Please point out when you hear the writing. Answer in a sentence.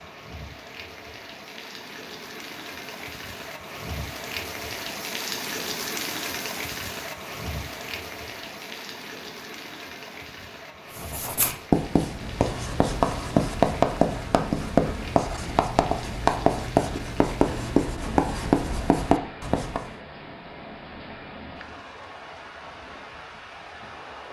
You can hear the writing from 10.9 to 19.9 s.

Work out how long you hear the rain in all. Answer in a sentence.
You can hear the rain for 24 seconds altogether.